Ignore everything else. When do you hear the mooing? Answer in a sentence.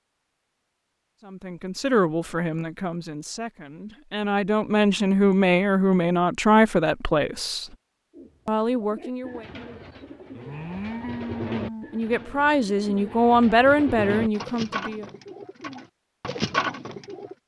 The mooing can be heard from 10.3 to 11.8 s.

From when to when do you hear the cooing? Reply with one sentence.
The cooing can be heard from 8.1 to 17.4 s.